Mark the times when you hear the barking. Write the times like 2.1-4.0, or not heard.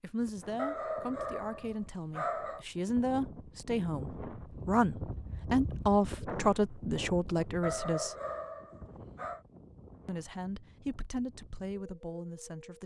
0.6-2.6, 7.6-9.4.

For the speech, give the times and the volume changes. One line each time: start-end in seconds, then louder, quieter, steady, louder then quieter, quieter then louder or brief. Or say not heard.
0.0-8.2 louder
10.1-12.8 brief.